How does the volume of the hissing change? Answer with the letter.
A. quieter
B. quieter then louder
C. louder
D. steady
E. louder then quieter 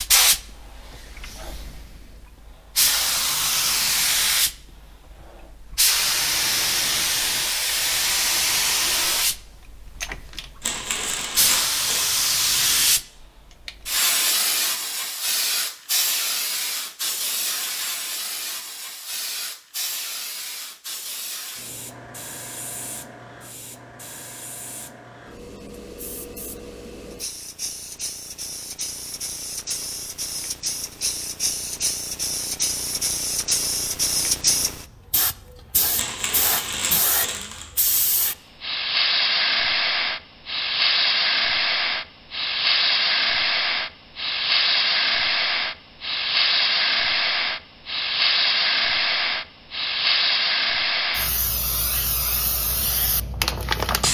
B.